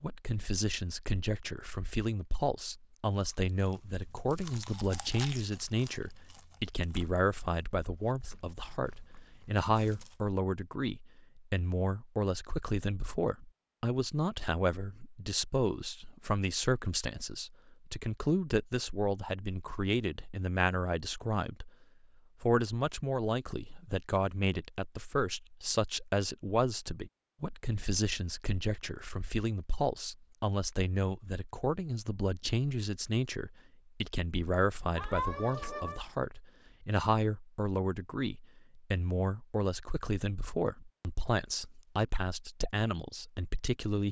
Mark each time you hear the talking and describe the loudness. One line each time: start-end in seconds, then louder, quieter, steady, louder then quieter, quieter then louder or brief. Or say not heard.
0.0-21.7 steady
22.4-44.0 steady.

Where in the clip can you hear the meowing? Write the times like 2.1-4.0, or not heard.
35.0-36.0.